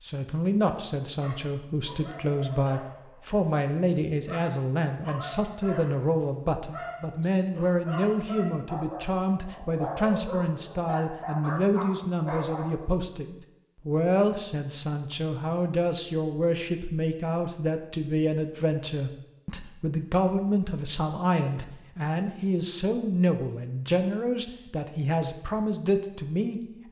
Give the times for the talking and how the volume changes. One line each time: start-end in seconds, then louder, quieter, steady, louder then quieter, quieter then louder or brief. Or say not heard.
0.0-26.8 steady.